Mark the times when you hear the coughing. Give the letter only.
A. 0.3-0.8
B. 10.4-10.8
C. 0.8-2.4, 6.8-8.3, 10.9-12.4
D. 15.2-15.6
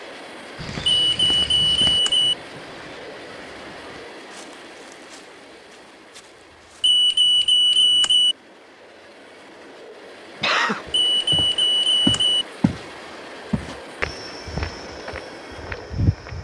B.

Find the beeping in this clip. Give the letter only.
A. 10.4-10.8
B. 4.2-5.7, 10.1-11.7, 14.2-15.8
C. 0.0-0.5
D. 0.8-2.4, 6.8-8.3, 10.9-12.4
D.